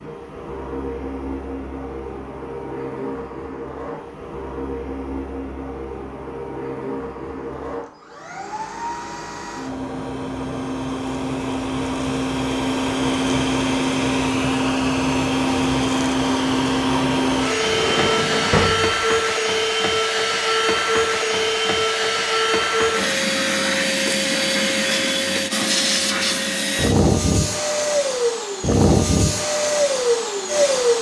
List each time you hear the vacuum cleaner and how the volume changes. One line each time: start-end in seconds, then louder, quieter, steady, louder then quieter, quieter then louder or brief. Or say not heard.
0.0-30.9 louder.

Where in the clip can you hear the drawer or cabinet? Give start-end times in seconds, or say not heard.
17.5-19.0.